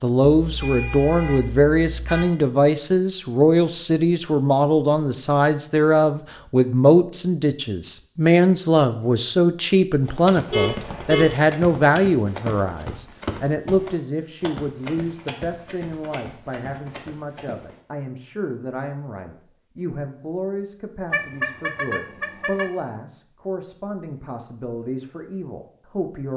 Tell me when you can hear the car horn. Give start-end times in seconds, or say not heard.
0.3-2.2, 10.5-11.4, 21.1-22.6.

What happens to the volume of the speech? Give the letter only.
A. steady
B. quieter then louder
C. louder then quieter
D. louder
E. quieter
E.